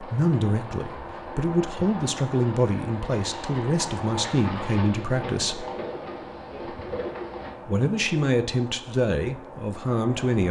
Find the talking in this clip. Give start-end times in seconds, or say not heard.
0.0-5.7, 7.7-10.4.